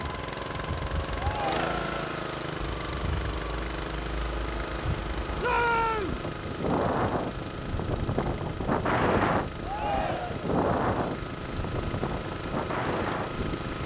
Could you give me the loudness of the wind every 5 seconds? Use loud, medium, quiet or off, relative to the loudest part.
medium, loud, loud.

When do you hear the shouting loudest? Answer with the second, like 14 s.
6 s.